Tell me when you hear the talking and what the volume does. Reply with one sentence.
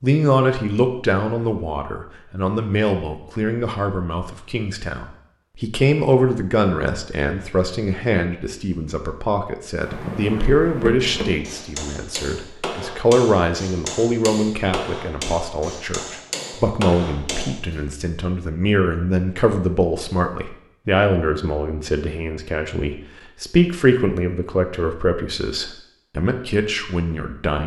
The talking can be heard from 0.0 to 27.6 s, at a steady volume.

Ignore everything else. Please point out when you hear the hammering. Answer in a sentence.
The hammering can be heard from 9.8 to 17.9 s.